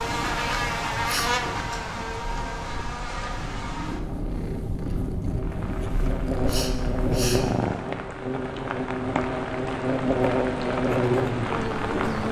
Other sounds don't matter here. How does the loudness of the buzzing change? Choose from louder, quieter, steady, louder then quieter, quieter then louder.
quieter then louder.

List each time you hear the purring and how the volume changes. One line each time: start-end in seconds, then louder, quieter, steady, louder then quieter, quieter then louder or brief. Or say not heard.
0.0-8.0 louder.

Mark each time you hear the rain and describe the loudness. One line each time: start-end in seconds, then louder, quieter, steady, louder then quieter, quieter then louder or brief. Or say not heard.
5.3-12.2 louder.